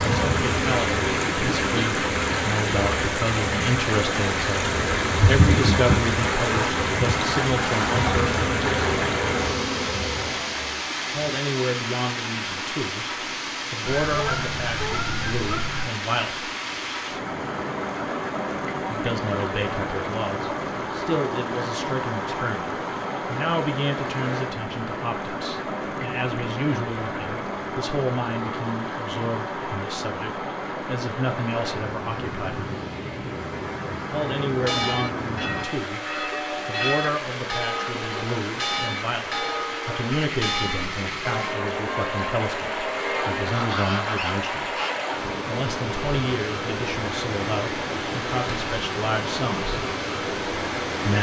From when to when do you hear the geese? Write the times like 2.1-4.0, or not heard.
13.8-15.8, 43.4-45.0.